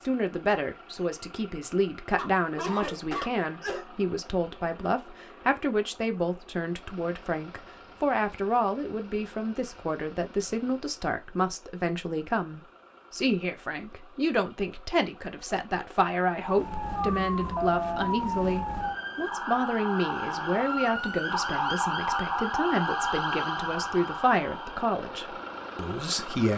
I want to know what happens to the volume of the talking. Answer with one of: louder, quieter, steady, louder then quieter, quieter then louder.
steady.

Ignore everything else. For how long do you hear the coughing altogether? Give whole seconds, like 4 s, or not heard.
2 s.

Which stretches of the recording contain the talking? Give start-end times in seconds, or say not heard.
0.0-26.5.